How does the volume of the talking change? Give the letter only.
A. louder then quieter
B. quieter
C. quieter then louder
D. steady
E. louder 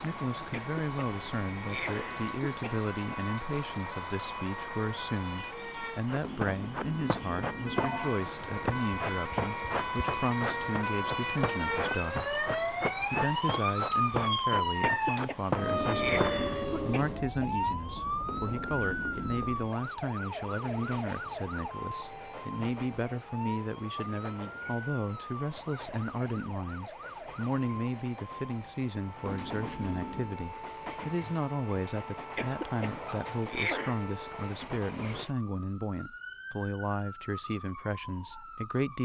D.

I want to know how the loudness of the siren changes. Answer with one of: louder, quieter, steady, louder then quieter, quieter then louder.
louder then quieter.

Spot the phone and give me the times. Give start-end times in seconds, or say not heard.
6.2-8.2, 18.2-19.6, 29.2-30.4.